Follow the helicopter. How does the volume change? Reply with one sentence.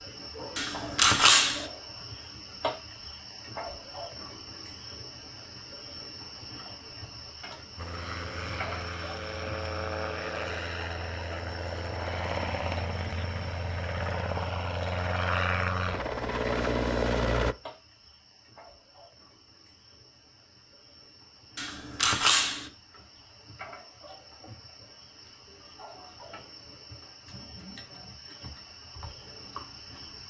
The loudness of the helicopter goes up.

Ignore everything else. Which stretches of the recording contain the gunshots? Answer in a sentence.
The gunshots can be heard from 0.6 to 1.6 s and from 21.6 to 22.6 s.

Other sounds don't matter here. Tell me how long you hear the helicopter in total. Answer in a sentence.
You can hear the helicopter for 10 seconds altogether.